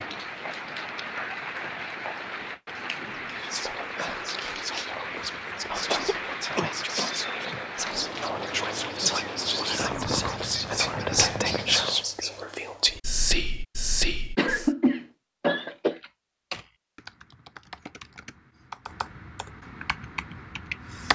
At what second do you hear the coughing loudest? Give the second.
15 s.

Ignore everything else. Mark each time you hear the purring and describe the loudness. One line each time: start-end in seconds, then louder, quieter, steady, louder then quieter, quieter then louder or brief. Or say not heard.
not heard.